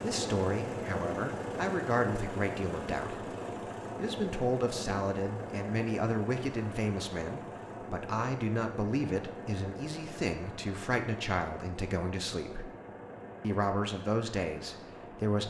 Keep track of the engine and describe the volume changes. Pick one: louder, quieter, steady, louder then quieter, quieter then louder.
quieter.